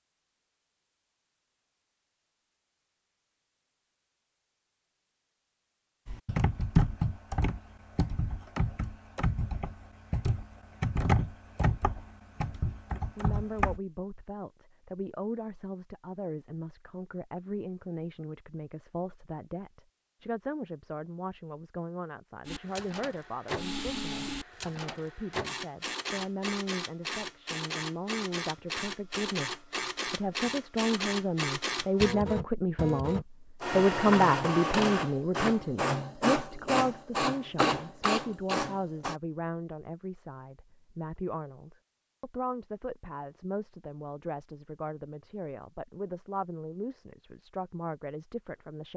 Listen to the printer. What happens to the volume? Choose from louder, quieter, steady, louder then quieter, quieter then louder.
louder.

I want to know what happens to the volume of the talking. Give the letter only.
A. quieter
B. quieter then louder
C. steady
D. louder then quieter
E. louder
D.